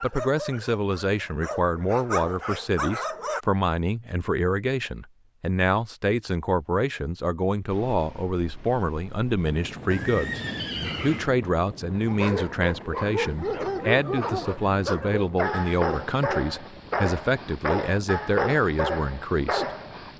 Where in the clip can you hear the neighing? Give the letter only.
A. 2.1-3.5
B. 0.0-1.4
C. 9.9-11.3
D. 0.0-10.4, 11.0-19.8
C.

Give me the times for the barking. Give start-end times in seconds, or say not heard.
0.0-3.5, 11.9-20.1.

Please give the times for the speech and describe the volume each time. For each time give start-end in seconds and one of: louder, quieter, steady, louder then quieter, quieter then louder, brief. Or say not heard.
0.0-10.4 steady
11.0-19.8 steady.